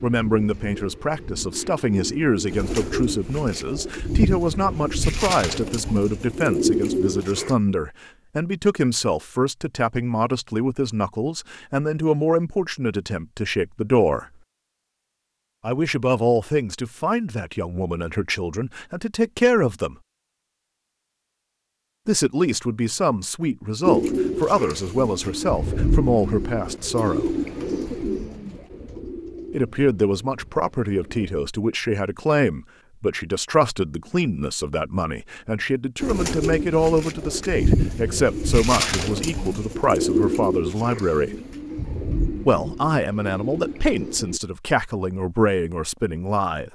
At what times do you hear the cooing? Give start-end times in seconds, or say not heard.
0.0-7.5, 23.9-31.3, 36.0-44.4.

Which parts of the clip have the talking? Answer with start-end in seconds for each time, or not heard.
0.0-14.2, 15.6-19.9, 22.1-27.4, 29.5-41.3, 42.5-46.7.